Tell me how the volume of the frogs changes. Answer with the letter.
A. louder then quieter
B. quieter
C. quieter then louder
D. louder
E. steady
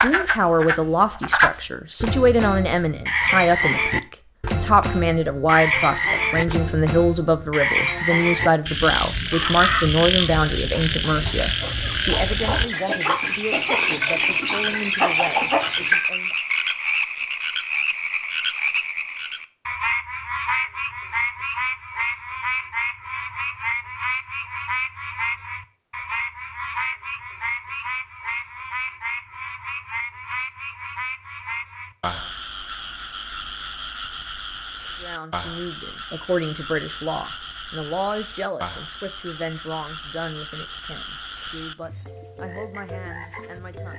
B.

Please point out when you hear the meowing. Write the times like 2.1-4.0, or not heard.
not heard.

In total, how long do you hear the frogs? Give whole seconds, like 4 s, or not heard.
44 s.